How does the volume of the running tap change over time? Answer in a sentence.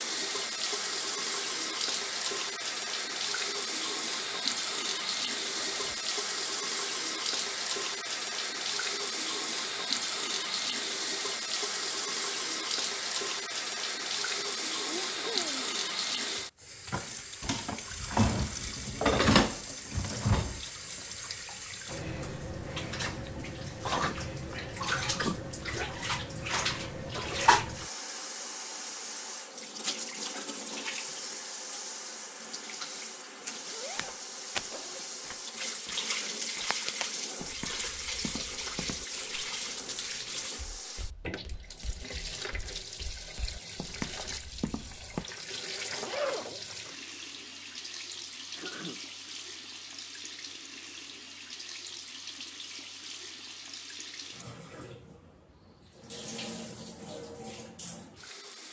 The volume of the running tap goes down.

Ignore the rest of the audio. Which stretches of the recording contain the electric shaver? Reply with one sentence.
The electric shaver can't be heard in this clip.